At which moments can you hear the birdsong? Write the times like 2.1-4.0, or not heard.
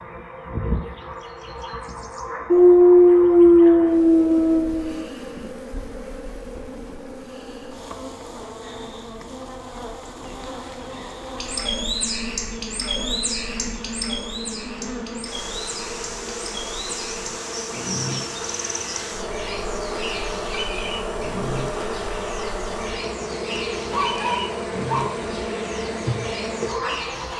11.3-27.3.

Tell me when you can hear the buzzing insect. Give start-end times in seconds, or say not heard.
0.0-27.3.